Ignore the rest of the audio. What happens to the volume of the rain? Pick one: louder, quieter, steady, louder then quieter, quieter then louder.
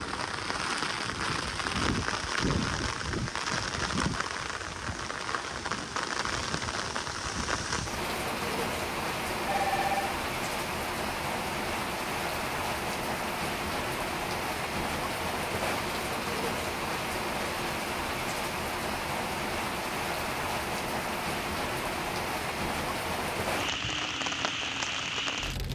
steady.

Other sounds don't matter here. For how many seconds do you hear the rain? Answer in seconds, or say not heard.
26 s.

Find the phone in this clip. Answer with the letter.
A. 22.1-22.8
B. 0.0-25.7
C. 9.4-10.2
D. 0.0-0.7
C.